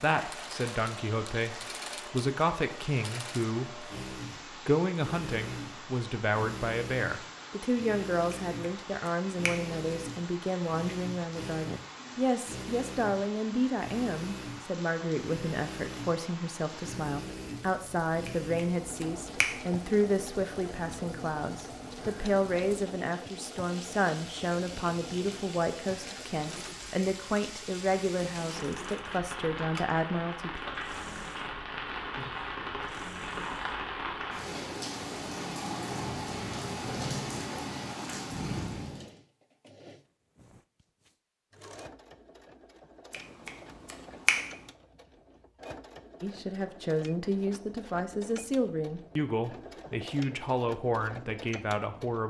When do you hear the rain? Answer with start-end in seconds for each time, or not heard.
0.0-39.1.